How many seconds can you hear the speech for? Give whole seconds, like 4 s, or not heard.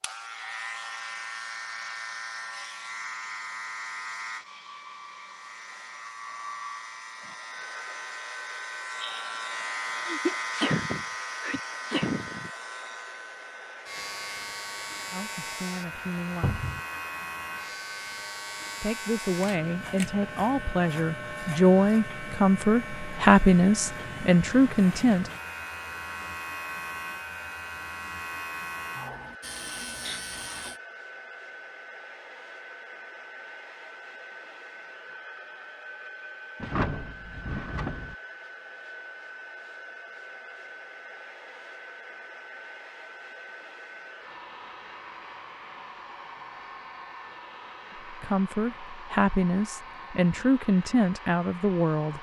12 s.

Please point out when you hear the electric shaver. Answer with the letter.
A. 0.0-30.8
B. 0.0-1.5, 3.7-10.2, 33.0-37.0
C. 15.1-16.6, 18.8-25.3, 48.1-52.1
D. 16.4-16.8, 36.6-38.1
A.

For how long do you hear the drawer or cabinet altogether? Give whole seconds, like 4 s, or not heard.
2 s.